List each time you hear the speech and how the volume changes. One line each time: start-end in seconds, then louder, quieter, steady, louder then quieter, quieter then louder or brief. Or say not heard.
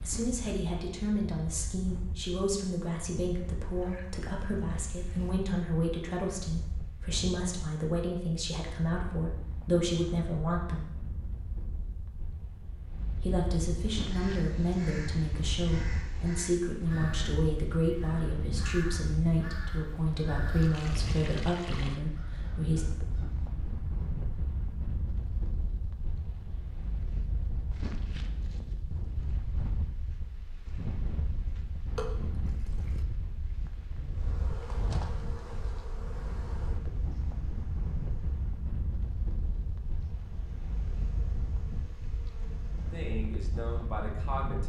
0.0-10.8 steady
13.2-22.9 steady
42.8-44.6 brief.